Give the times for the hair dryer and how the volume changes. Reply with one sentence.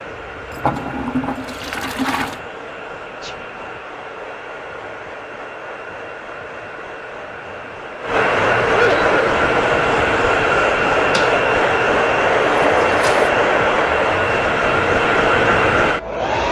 You can hear the hair dryer from 0.0 to 16.4 s, getting louder.